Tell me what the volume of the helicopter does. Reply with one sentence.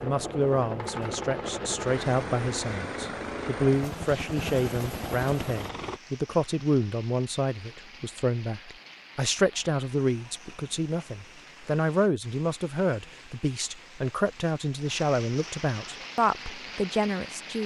The volume of the helicopter stays about the same.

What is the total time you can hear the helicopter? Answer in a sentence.
You can hear the helicopter for 6 seconds altogether.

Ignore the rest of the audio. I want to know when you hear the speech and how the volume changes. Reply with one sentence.
You can hear the speech from 0.0 to 17.6 s, at a steady volume.